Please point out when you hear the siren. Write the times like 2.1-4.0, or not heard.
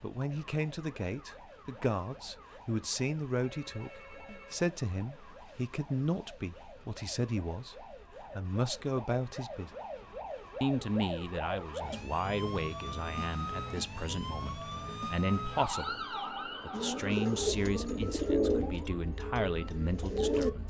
0.1-20.6.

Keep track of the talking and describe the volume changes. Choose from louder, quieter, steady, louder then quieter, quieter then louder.
steady.